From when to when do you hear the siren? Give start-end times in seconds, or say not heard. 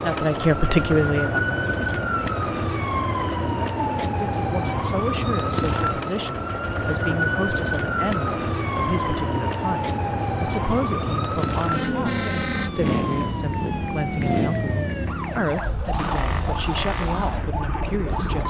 0.0-18.4.